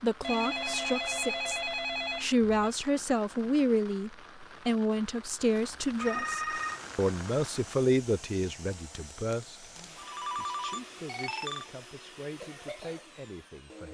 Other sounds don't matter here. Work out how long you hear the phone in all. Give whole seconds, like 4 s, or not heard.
5 s.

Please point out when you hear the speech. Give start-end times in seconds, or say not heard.
0.0-13.8.